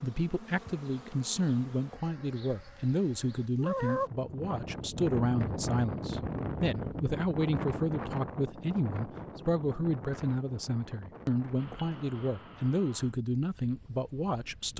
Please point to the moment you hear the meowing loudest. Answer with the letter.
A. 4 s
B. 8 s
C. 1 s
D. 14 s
A.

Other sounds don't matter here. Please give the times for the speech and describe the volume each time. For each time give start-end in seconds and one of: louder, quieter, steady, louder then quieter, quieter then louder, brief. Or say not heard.
0.0-14.7 steady.